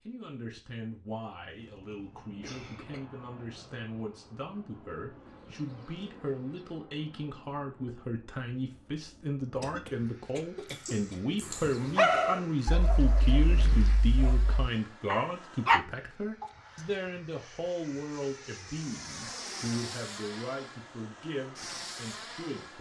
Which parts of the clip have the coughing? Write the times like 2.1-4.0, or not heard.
1.5-3.0, 9.6-11.4, 16.4-17.1.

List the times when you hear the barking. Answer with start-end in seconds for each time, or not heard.
10.7-15.8.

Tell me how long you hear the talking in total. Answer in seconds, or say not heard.
23 s.